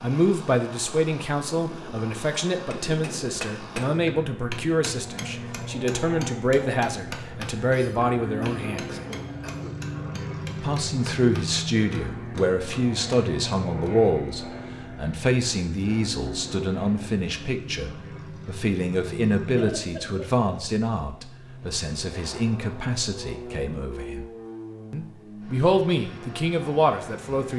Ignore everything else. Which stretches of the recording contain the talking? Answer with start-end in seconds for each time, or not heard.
0.0-9.0, 10.6-24.2, 24.9-27.5.